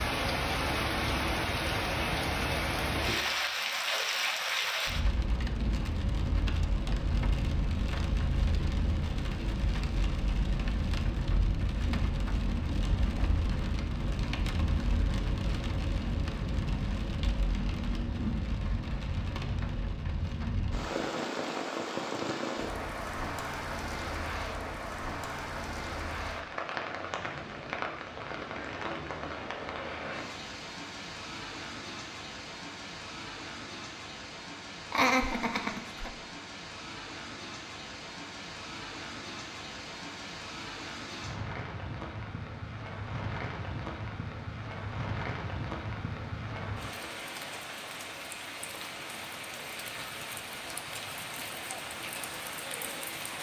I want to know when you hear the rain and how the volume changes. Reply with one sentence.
The rain can be heard from 0.0 to 53.3 s, getting quieter.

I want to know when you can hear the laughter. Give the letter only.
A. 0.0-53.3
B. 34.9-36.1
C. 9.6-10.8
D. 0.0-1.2
B.